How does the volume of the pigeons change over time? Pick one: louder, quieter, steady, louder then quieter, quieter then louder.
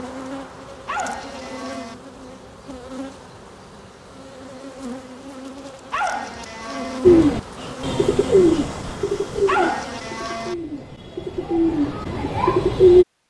quieter then louder.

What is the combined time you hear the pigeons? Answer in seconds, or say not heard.
6 s.